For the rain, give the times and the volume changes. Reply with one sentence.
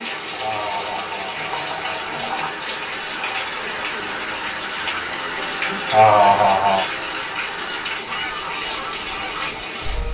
The rain can be heard from 0.0 to 10.0 s, at a steady volume.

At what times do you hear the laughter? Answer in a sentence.
The laughter can be heard from 0.3 to 2.2 s and from 5.9 to 6.8 s.